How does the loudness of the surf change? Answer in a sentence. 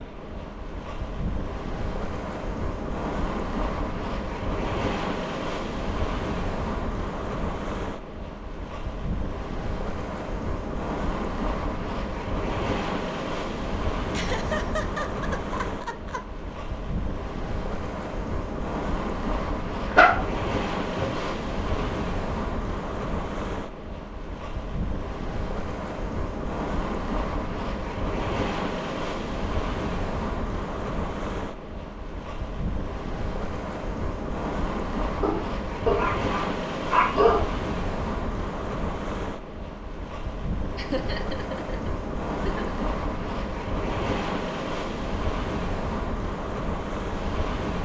The loudness of the surf stays about the same.